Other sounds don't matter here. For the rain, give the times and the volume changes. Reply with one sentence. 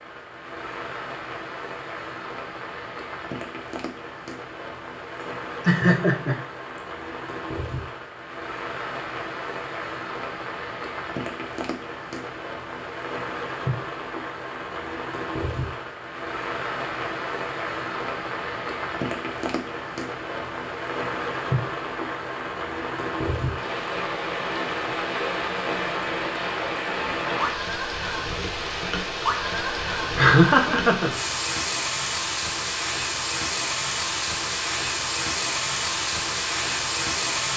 The rain can be heard from 0.0 to 37.5 s, getting louder.